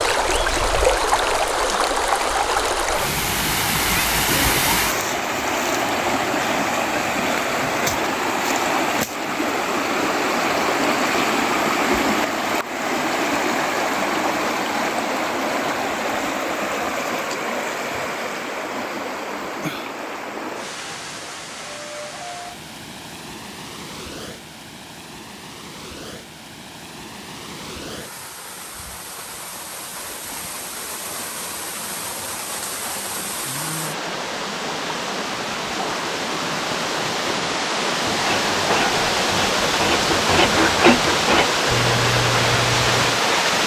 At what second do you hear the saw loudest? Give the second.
41 s.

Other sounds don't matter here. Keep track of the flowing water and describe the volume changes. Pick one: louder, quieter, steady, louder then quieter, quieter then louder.
quieter then louder.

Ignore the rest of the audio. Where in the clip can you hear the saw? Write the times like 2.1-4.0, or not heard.
37.9-43.2.